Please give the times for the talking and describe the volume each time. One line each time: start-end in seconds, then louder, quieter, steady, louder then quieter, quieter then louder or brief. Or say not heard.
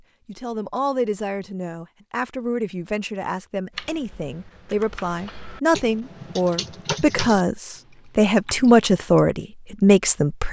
0.2-10.4 louder.